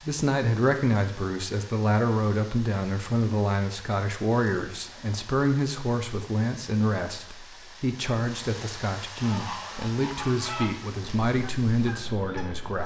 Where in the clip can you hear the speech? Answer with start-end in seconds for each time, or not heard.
0.0-12.8.